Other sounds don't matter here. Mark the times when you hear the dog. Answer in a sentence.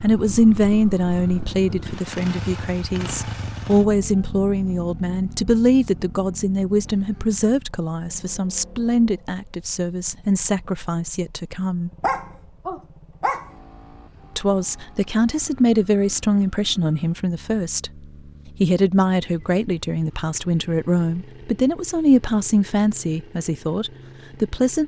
You can hear the dog from 12.0 to 13.5 s.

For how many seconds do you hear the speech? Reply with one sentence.
The speech can be heard for 22 seconds in total.